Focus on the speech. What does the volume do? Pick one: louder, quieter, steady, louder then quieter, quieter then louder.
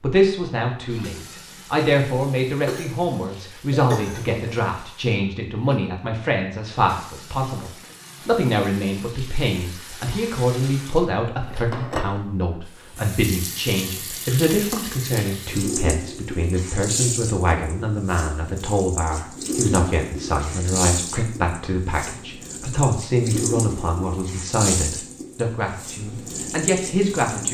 steady.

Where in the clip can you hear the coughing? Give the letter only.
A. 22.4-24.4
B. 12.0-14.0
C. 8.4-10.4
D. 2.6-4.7
D.